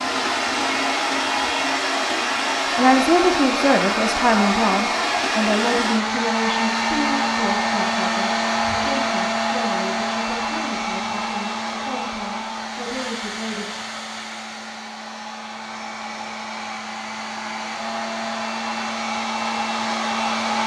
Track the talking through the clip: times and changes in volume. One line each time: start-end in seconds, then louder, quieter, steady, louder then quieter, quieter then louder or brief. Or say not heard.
2.8-13.7 quieter.